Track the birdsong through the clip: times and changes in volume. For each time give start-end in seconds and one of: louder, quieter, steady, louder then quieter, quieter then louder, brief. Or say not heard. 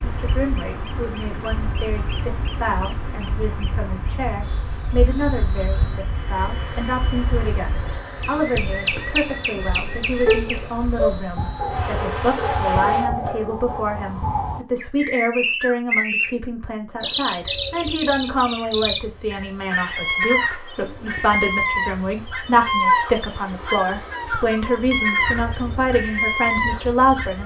0.0-27.4 louder.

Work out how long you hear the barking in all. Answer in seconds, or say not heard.
2 s.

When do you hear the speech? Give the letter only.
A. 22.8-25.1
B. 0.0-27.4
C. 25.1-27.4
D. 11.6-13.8
B.